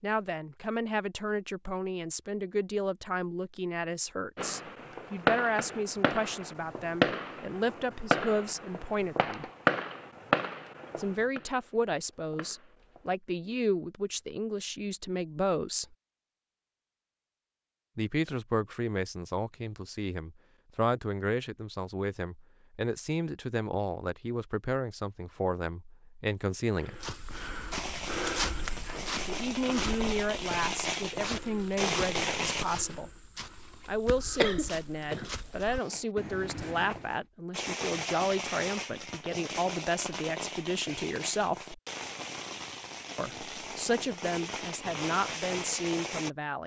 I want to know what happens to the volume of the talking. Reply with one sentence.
The volume of the talking stays about the same.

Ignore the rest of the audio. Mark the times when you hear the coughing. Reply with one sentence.
The coughing can be heard from 34.4 to 36.0 s.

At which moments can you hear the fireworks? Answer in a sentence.
You can hear the fireworks from 4.3 to 13.2 s, from 27.7 to 32.6 s and from 37.5 to 46.3 s.